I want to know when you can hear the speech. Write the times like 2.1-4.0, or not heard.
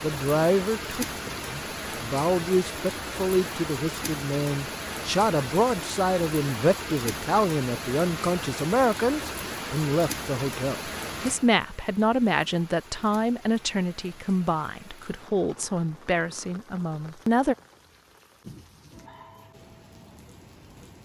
0.0-17.6.